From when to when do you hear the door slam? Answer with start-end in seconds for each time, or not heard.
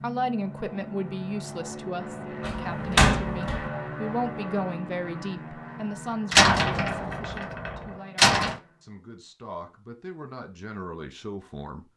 2.4-3.7, 6.3-8.6.